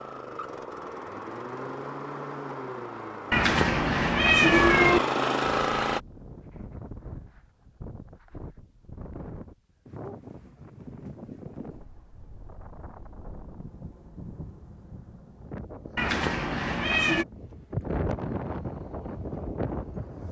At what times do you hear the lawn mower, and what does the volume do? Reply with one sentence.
The lawn mower can be heard from 0.0 to 6.0 s, getting louder.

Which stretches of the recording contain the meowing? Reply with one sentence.
You can hear the meowing from 3.3 to 5.0 s and from 15.9 to 17.2 s.